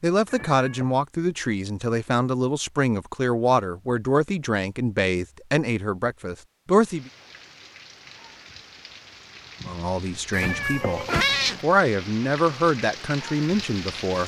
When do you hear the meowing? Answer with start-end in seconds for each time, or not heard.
0.2-0.9, 10.3-11.7.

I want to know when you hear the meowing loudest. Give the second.
11 s.